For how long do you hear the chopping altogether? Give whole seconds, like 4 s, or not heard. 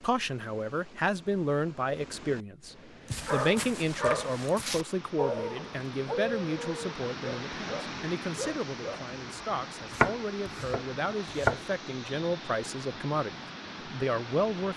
2 s.